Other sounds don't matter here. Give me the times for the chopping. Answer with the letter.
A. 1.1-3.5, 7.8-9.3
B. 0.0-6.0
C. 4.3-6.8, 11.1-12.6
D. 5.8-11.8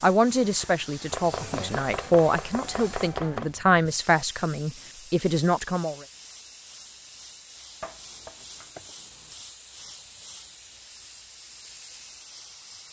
A.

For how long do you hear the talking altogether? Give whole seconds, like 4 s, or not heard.
6 s.